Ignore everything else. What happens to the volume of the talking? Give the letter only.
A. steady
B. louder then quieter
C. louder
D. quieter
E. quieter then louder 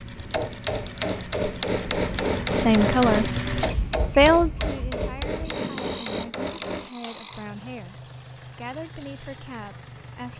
D.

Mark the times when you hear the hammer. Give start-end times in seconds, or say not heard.
0.1-7.2.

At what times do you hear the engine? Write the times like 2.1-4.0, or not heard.
0.0-10.3.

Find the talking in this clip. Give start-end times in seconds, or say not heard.
2.5-10.3.